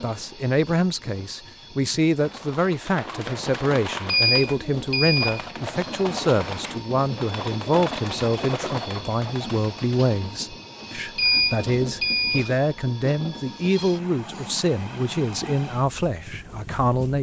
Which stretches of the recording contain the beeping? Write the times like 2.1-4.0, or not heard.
4.0-5.5, 11.2-12.5.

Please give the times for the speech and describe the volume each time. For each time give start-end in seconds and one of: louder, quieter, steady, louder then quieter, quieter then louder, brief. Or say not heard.
0.0-17.1 steady.